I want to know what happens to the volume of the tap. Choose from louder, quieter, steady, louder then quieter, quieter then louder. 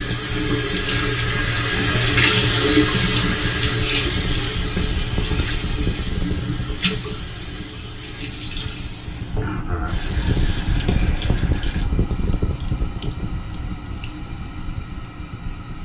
quieter.